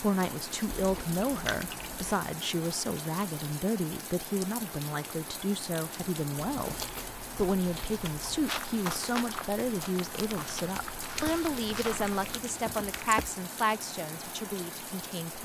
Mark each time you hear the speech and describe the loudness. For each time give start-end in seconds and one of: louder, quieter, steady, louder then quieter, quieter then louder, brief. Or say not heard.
0.0-6.8 steady
7.3-15.4 steady.